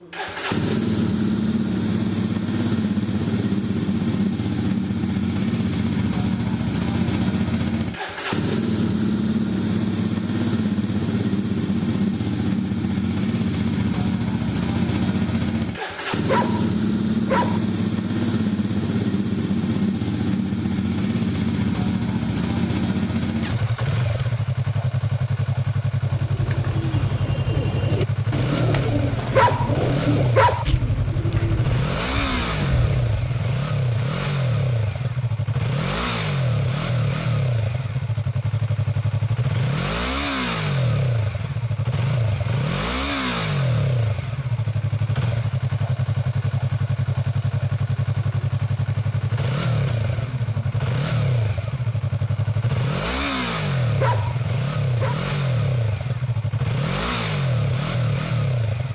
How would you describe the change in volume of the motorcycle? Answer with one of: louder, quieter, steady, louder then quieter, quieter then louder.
steady.